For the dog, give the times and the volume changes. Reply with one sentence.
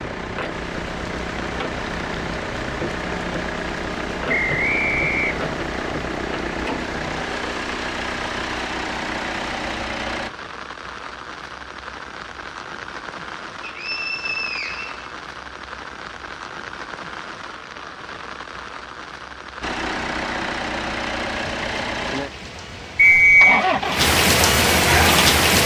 The dog can't be heard in this clip.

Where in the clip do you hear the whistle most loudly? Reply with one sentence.
The volume of the whistle peaks at 23 seconds.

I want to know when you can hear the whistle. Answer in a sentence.
The whistle can be heard from 4.2 to 5.3 s, from 13.6 to 15.1 s and from 22.9 to 23.6 s.